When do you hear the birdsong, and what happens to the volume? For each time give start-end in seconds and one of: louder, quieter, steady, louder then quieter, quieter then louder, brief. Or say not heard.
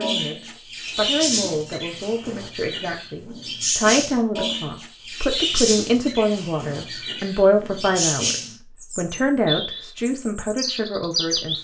0.0-11.6 steady.